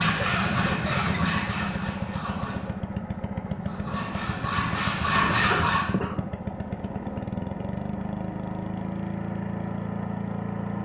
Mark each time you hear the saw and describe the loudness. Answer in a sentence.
The saw can be heard from 0.0 to 6.0 s, getting quieter then louder.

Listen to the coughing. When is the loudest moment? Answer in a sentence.
The loudest moment of the coughing is at 6 seconds.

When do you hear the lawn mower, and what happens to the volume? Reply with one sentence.
You can hear the lawn mower from 0.0 to 10.8 s, at a steady volume.